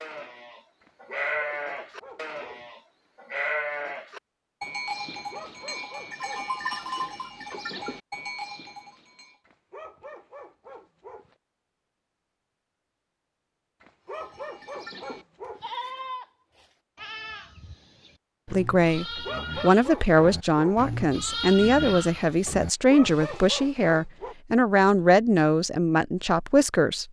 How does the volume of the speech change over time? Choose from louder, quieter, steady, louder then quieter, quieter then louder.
steady.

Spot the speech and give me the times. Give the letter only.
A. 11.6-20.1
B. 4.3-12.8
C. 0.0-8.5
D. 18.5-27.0
D.